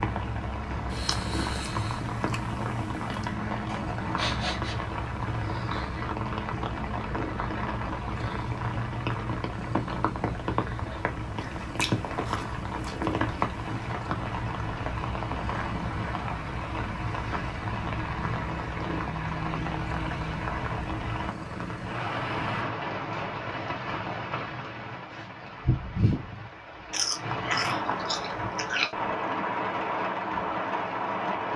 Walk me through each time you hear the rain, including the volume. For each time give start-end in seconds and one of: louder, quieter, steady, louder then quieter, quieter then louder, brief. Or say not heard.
0.0-31.5 steady.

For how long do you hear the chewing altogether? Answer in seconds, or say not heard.
7 s.